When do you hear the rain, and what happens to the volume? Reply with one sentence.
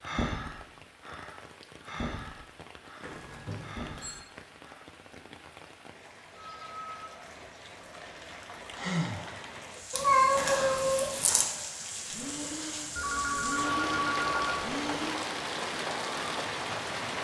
The rain can be heard from 0.0 to 17.1 s, getting louder.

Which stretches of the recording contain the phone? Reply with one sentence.
You can hear the phone from 3.0 to 4.2 s, from 6.3 to 7.0 s and from 12.9 to 14.6 s.